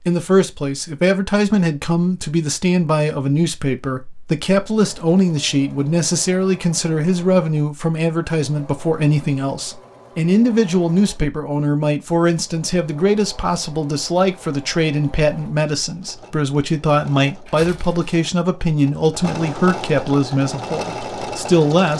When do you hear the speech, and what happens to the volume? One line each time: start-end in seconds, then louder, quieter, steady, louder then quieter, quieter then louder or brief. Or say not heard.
0.1-21.9 steady.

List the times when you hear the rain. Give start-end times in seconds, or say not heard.
not heard.